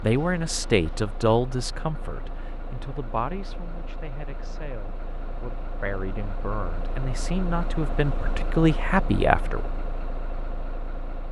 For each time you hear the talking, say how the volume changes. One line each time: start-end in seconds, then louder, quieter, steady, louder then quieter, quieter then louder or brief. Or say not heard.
0.0-9.7 quieter then louder.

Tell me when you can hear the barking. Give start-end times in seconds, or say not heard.
not heard.